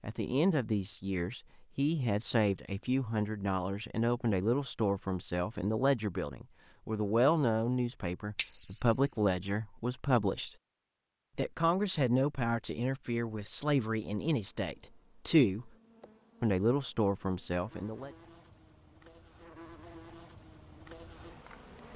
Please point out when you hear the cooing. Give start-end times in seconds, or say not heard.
not heard.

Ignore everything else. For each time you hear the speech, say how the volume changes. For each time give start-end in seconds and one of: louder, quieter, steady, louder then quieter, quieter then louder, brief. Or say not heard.
0.0-10.5 steady
11.3-15.7 quieter
16.4-18.1 brief.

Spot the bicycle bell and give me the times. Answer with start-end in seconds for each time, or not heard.
8.3-9.3.